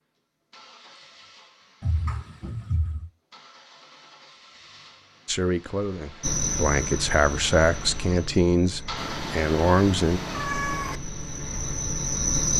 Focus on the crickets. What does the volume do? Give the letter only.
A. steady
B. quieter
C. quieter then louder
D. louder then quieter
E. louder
C.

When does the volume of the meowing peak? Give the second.
11 s.